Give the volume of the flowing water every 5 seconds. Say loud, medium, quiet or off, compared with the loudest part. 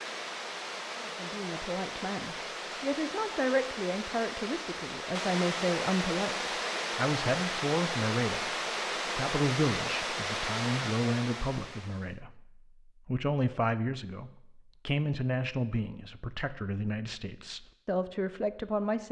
medium, loud, loud, off.